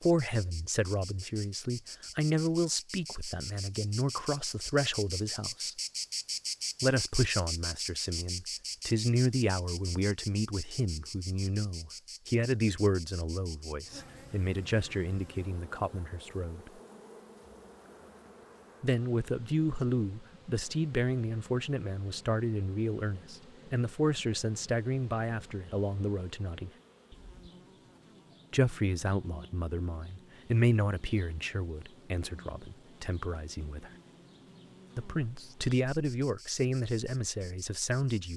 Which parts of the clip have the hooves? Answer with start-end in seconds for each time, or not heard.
not heard.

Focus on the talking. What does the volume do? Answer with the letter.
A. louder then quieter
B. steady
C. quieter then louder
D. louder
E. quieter
B.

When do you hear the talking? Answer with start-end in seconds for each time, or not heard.
0.0-5.8, 6.8-16.7, 18.8-26.7, 28.5-33.9, 35.0-38.3.